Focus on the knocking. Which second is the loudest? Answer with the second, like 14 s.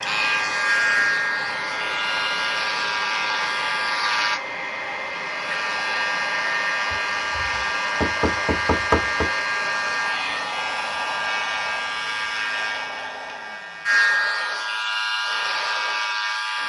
9 s.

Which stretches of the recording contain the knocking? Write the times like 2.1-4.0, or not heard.
6.9-9.3.